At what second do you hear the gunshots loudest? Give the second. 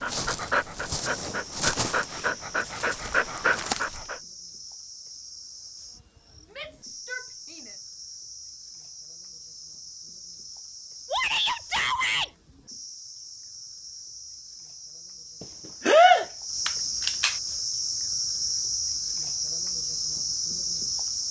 16 s.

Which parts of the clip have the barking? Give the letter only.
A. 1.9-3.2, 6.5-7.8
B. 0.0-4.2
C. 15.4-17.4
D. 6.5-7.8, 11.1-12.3
B.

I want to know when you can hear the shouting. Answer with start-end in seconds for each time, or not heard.
6.5-7.8, 11.1-12.3.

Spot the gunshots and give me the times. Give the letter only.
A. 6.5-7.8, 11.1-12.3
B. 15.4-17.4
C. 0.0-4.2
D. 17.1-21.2
B.